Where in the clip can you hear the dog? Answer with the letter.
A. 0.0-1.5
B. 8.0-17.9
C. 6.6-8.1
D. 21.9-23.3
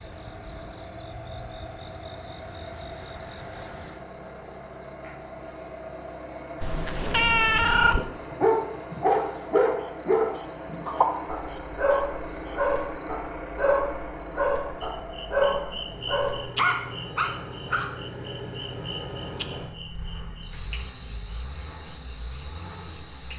B.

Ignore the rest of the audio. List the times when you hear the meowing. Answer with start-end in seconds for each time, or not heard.
6.6-8.1.